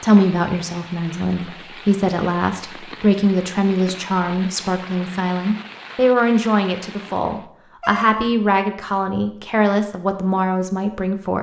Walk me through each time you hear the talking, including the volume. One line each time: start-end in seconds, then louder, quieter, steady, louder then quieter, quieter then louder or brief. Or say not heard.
0.0-11.3 steady.